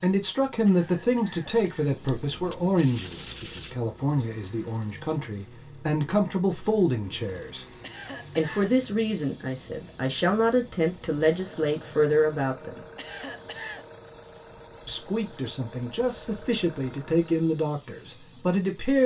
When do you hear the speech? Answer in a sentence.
The speech can be heard from 0.0 to 7.8 s, from 8.3 to 12.8 s and from 14.8 to 19.0 s.